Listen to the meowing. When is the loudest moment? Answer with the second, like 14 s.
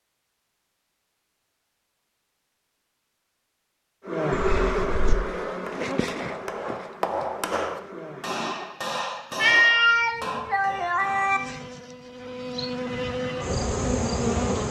10 s.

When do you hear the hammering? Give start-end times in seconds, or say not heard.
5.5-11.3.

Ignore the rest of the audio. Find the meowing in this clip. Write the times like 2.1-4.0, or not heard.
4.3-5.2, 9.4-11.4.